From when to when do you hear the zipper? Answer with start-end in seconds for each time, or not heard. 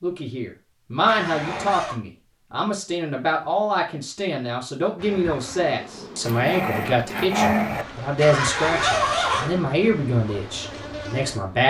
1.1-1.9, 8.2-9.6.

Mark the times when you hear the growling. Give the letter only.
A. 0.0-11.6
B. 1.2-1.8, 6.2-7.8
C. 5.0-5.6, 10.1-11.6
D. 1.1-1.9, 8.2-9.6
B.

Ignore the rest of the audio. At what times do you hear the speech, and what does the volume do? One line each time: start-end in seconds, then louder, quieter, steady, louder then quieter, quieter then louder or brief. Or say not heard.
0.0-11.6 steady.